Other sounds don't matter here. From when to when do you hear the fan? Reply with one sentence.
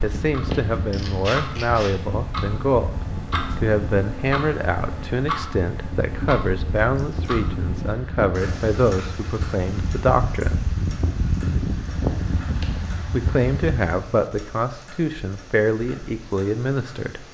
You can hear the fan from 0.0 to 13.9 s.